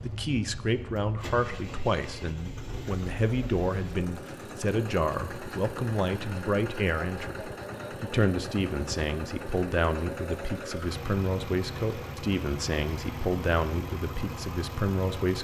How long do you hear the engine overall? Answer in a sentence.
You can hear the engine for 15 seconds altogether.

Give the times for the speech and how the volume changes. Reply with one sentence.
You can hear the speech from 0.0 to 15.3 s, at a steady volume.